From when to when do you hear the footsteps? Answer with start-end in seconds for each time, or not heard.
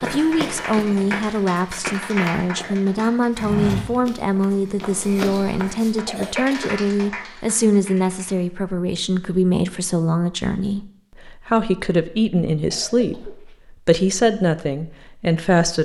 0.0-6.0.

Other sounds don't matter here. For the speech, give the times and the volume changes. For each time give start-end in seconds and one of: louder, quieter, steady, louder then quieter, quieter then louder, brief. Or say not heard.
0.0-15.8 steady.